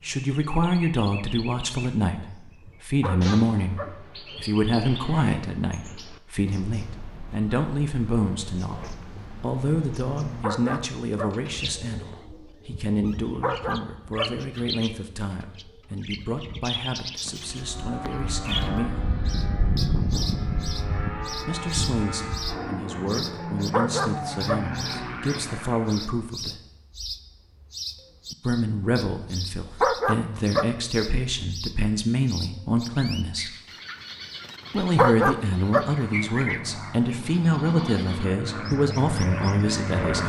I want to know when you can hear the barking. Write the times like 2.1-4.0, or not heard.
3.0-3.9, 10.4-11.3, 13.4-14.3, 23.7-24.6, 29.8-30.6, 35.0-35.9.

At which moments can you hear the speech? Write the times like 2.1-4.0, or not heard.
0.0-19.1, 21.4-26.6, 28.4-33.5, 34.7-40.2.